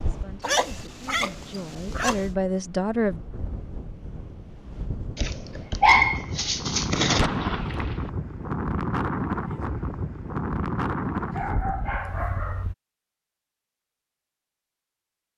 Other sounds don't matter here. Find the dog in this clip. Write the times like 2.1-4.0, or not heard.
0.4-2.2, 5.2-7.2, 11.3-12.7.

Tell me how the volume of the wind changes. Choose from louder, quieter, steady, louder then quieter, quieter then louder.
louder.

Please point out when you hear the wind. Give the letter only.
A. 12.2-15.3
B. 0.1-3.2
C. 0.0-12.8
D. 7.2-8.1
C.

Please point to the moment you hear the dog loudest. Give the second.
6 s.